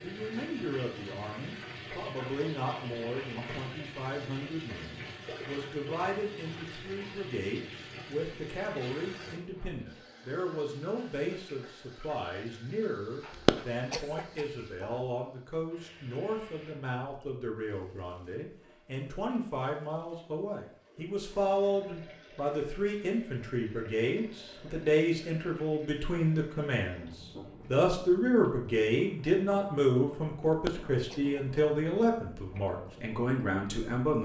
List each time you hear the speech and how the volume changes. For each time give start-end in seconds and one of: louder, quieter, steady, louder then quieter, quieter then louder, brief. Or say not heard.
0.0-34.2 louder.